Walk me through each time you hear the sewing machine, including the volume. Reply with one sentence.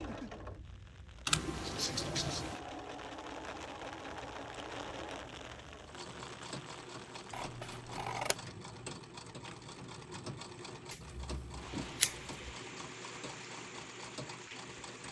You can hear the sewing machine from 0.0 to 15.0 s, at a steady volume.